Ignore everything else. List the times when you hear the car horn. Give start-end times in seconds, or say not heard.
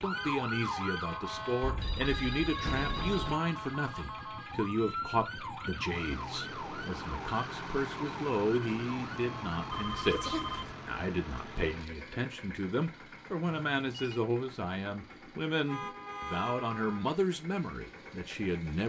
0.1-1.4, 15.7-17.1.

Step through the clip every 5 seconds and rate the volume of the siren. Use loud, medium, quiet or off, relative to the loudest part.
loud, loud, off, off.